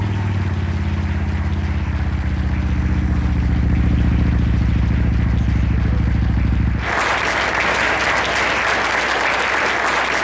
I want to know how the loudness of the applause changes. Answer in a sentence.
The loudness of the applause goes up.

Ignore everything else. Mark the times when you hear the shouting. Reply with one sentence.
The shouting can't be heard in this clip.